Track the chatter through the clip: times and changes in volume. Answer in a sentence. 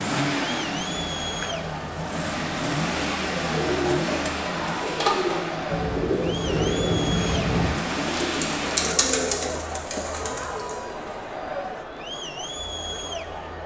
The chatter can be heard from 0.0 to 13.6 s, at a steady volume.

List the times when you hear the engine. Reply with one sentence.
You can hear the engine from 0.0 to 9.0 s.